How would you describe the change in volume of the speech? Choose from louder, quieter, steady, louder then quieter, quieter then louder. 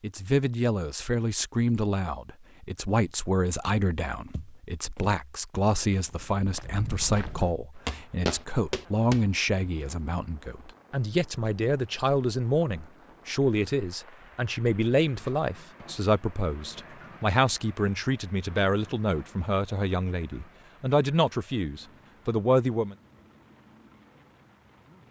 steady.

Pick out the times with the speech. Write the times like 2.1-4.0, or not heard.
0.0-22.9.